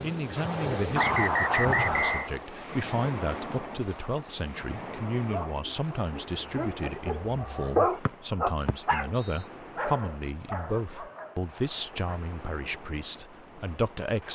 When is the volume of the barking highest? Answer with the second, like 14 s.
8 s.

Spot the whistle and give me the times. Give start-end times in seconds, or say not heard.
0.9-2.3, 8.1-9.4.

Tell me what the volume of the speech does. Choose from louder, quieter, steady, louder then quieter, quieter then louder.
steady.